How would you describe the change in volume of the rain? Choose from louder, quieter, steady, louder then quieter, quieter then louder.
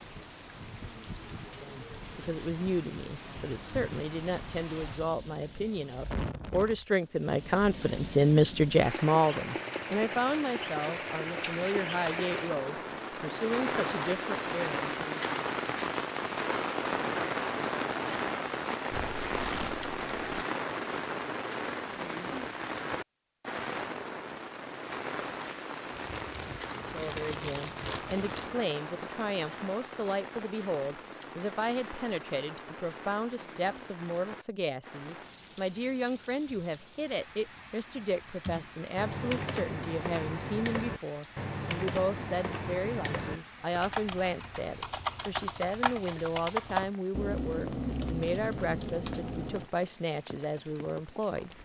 louder then quieter.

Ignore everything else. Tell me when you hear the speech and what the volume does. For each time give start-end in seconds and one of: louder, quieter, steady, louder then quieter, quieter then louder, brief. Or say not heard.
1.6-15.1 louder then quieter
26.8-51.5 steady.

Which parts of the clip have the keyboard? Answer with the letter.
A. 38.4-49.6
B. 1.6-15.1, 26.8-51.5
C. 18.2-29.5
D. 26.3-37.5
A.